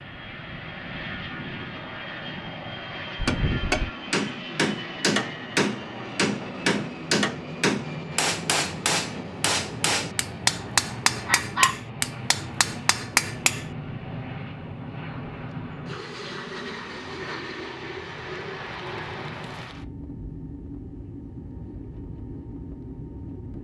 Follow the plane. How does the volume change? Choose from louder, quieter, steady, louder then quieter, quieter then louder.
steady.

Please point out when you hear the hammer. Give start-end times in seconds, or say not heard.
3.1-13.7.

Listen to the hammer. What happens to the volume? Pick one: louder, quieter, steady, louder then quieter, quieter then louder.
steady.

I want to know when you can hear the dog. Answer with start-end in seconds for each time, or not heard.
11.2-12.2.